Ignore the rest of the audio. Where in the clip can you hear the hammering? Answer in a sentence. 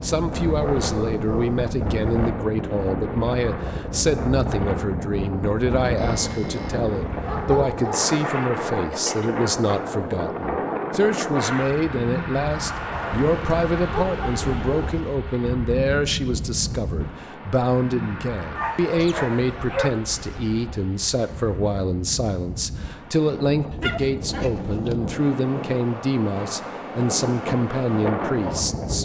You can't hear the hammering here.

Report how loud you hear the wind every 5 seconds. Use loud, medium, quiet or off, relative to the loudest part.
loud, loud, loud, medium, medium, loud.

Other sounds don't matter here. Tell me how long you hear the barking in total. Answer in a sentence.
The barking can be heard for 9 seconds in total.